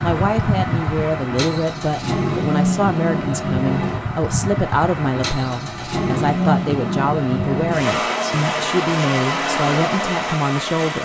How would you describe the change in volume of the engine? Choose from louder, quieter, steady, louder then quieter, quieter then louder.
steady.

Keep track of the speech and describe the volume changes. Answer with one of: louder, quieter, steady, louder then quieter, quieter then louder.
steady.